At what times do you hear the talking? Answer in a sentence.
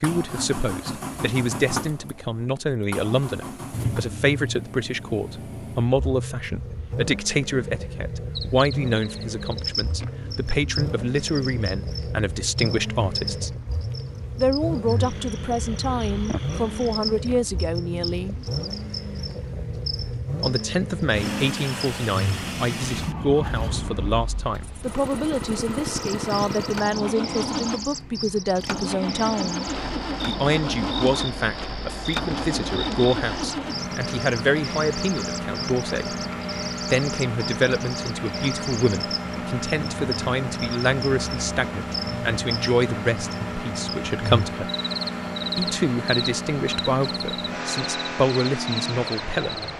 The talking can be heard from 0.0 to 13.5 s, from 14.3 to 18.4 s, from 20.4 to 36.1 s, from 36.9 to 44.7 s and from 45.5 to 49.6 s.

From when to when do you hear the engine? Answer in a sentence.
You can hear the engine from 0.0 to 49.7 s.